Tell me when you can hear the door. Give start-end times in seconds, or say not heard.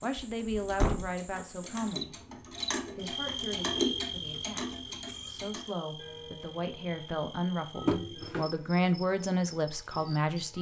0.3-1.1, 7.8-8.5.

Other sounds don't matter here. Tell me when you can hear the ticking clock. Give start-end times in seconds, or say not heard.
0.0-10.5.